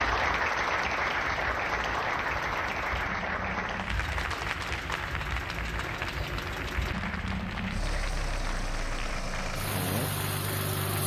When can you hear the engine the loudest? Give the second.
10 s.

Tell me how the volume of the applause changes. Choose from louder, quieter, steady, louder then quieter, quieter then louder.
quieter.